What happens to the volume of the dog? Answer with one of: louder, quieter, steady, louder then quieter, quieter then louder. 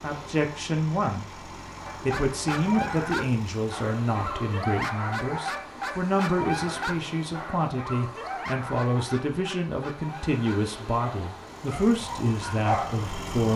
quieter.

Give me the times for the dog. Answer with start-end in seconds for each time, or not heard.
1.9-13.0.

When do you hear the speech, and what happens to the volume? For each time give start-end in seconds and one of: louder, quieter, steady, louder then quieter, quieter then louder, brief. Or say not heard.
0.0-13.5 steady.